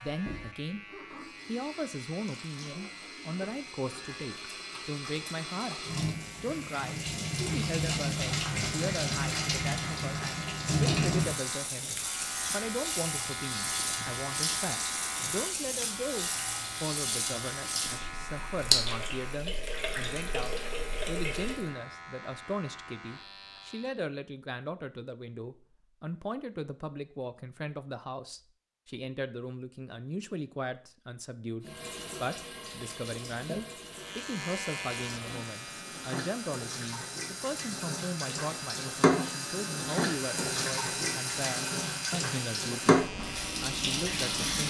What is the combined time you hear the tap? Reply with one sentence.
You can hear the tap for 35 seconds altogether.